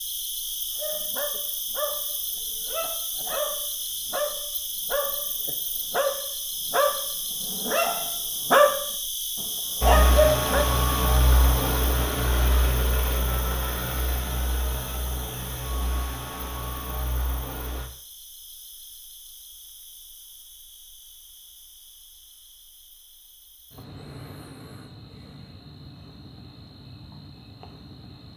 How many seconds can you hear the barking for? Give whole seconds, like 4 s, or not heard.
10 s.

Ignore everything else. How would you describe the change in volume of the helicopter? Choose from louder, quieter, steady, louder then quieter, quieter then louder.
quieter.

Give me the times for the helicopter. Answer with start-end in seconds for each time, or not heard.
9.8-17.9.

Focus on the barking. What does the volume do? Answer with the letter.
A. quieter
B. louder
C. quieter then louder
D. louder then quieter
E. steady
B.